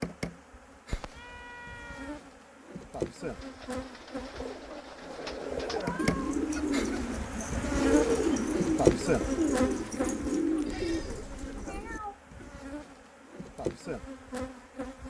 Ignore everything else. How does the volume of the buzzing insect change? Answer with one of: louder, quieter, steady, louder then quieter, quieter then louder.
louder then quieter.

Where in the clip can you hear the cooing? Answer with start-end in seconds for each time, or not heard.
3.3-12.6.